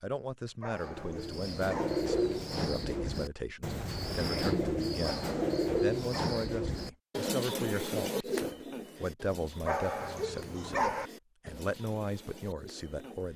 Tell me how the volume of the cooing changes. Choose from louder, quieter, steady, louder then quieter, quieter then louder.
quieter.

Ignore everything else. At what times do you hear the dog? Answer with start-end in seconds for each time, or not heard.
0.6-2.0, 5.0-6.5, 9.7-11.1.